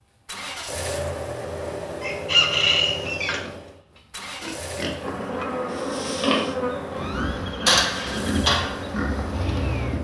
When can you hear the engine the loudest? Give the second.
1 s.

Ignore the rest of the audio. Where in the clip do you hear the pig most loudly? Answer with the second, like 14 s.
8 s.